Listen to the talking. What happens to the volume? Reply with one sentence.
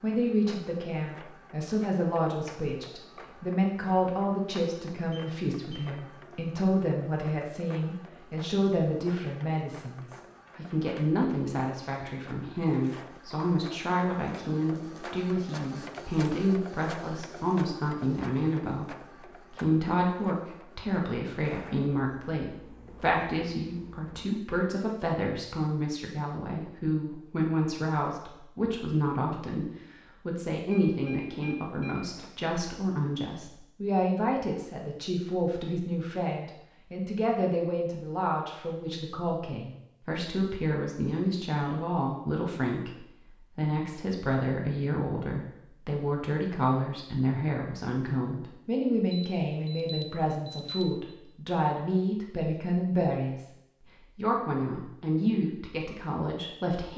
The volume of the talking stays about the same.